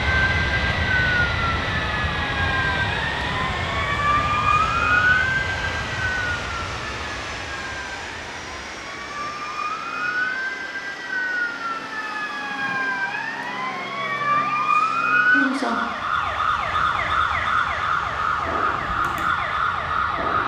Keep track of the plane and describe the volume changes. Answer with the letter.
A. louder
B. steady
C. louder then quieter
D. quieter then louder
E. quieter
E.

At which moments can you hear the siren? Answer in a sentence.
You can hear the siren from 0.0 to 20.4 s.